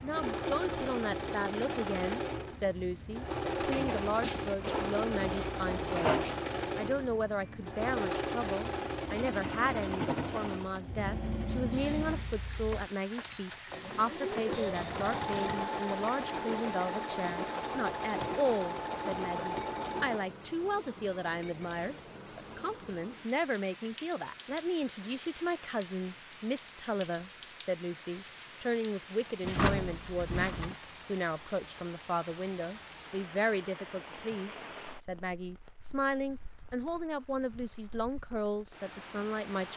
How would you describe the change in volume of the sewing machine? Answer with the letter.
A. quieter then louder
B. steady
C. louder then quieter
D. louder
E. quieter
B.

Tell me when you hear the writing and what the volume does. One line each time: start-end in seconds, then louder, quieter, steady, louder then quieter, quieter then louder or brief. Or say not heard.
not heard.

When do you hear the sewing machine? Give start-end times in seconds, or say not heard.
0.0-20.3.